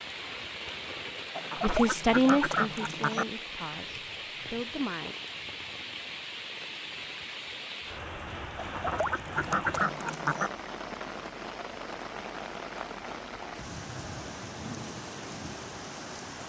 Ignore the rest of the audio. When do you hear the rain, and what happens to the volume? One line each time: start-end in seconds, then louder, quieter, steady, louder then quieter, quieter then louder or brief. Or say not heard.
0.0-16.4 steady.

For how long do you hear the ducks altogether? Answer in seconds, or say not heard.
4 s.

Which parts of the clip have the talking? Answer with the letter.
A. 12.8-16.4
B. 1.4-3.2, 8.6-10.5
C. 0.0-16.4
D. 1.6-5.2
D.